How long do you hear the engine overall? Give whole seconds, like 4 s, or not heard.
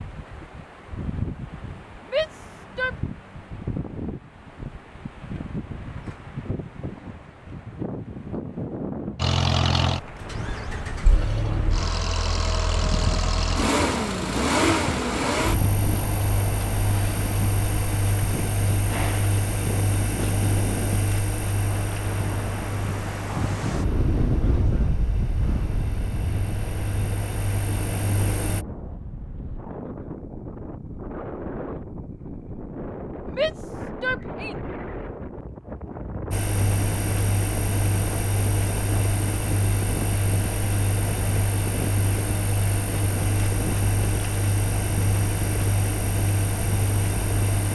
31 s.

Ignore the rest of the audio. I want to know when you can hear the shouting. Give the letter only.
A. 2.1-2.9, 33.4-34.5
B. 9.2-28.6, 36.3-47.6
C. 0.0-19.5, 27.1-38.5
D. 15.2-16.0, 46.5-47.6
A.